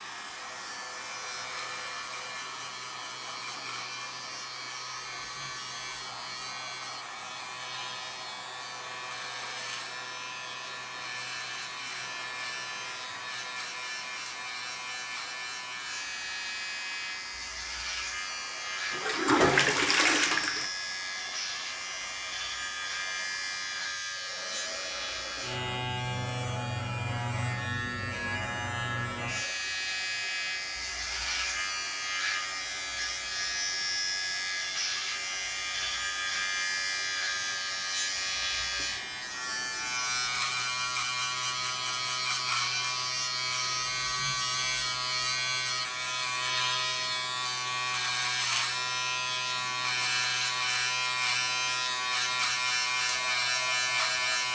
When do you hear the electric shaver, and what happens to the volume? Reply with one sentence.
You can hear the electric shaver from 0.0 to 54.5 s, getting louder.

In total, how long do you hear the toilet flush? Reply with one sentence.
The toilet flush can be heard for 2 seconds in total.